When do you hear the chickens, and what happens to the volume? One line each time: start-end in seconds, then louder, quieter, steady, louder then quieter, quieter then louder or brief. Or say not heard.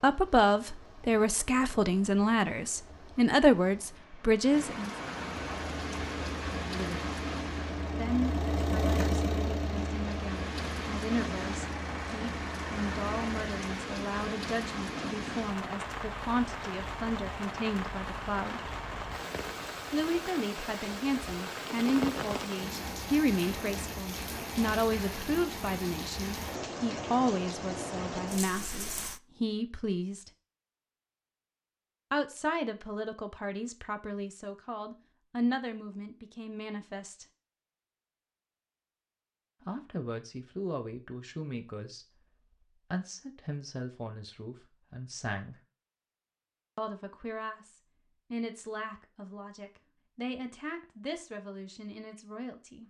not heard.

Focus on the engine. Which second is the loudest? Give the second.
9 s.